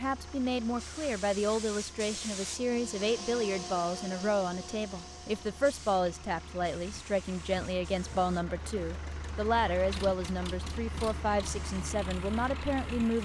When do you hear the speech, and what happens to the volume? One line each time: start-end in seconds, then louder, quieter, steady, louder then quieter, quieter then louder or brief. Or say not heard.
0.0-13.2 steady.